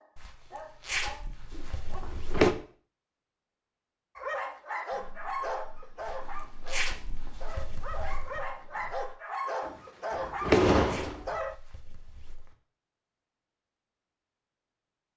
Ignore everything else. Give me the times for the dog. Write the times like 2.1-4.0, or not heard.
0.0-2.0, 4.2-11.6.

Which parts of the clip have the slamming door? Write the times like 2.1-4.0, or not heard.
1.6-2.5, 9.7-11.2.